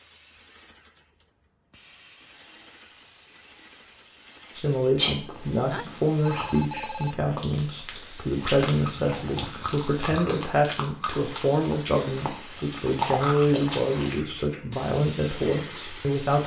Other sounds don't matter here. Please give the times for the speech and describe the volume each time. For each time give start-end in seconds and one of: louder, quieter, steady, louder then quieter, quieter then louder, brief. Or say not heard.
4.5-16.4 steady.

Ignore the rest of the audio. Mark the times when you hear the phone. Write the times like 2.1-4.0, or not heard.
5.2-7.2.